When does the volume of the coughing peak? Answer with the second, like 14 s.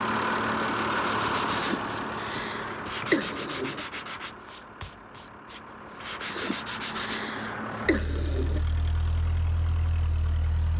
3 s.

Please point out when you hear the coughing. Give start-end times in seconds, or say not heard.
1.5-3.9, 6.1-8.7.